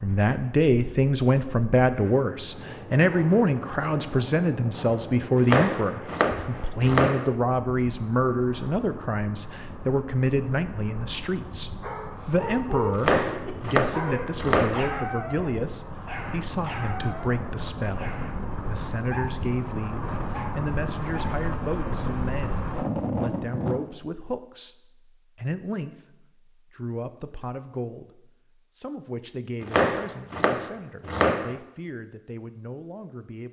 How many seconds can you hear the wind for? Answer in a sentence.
You can hear the wind for 24 seconds altogether.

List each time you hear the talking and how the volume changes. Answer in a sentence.
You can hear the talking from 0.0 to 33.4 s, getting quieter.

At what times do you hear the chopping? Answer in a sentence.
You can hear the chopping from 5.3 to 7.3 s, from 12.9 to 14.9 s and from 29.6 to 31.6 s.